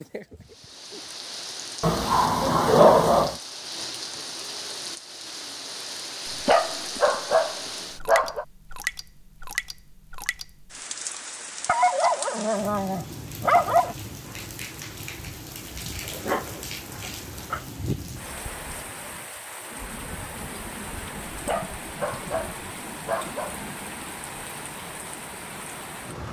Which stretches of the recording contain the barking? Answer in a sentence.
The barking can be heard from 1.8 to 3.4 s, from 6.5 to 8.4 s, from 11.7 to 13.9 s, from 16.1 to 17.6 s and from 21.4 to 23.6 s.